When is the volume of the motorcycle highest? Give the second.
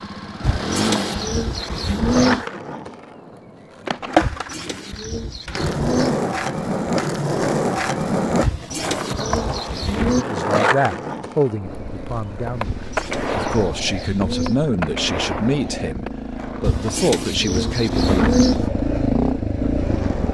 19 s.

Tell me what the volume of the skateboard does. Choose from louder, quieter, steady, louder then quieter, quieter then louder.
quieter.